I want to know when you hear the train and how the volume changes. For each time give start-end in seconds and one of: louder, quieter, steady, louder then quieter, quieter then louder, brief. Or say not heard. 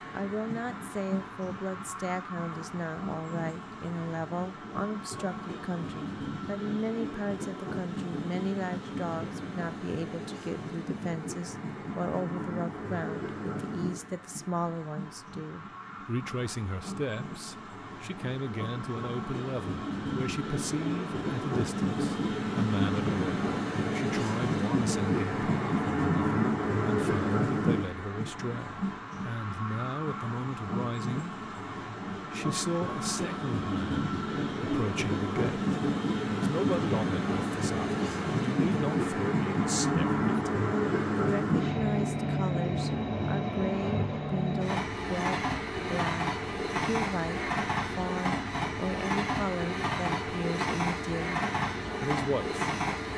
0.0-53.1 louder.